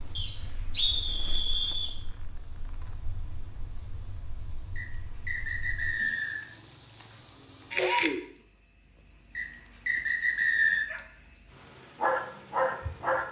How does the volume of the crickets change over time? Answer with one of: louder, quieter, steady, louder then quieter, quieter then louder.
louder.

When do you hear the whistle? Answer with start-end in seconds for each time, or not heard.
0.1-1.9, 4.8-6.5, 9.3-10.9.